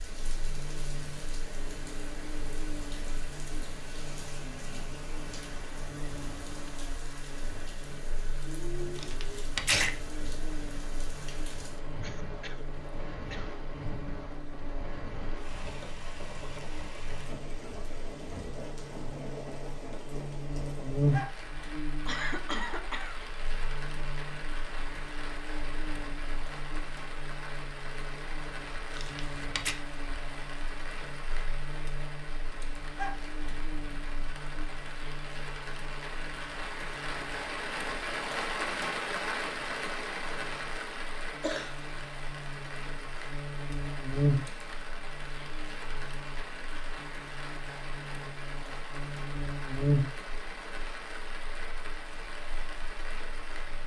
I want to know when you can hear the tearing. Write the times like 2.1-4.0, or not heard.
8.9-9.9, 28.9-29.8.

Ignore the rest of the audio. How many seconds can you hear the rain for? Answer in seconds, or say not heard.
54 s.